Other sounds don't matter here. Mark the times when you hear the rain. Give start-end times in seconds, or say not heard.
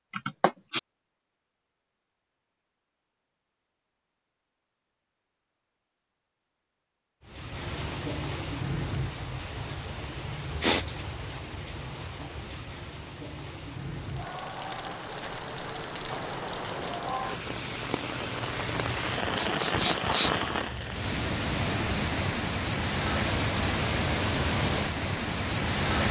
7.2-26.0.